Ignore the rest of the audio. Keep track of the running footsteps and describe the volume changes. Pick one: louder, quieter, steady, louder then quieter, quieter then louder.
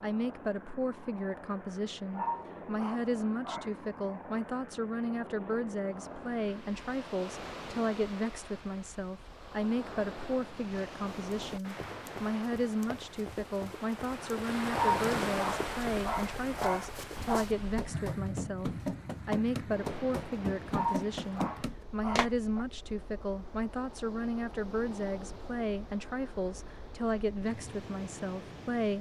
louder.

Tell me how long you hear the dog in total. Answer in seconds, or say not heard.
6 s.